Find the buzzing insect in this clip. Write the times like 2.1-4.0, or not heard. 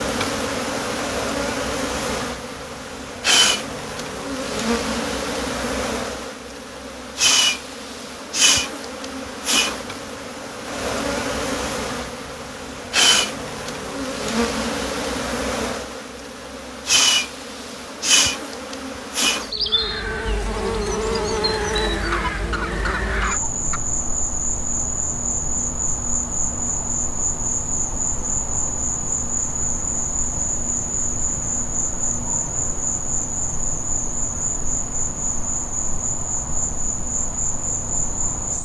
0.0-38.6.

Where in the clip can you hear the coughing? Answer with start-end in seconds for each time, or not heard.
22.1-23.8.